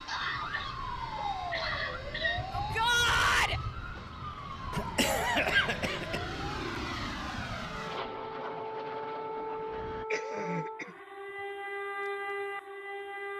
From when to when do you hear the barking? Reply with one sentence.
You can't hear the barking here.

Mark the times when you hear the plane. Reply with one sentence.
The plane can be heard from 0.0 to 10.1 s.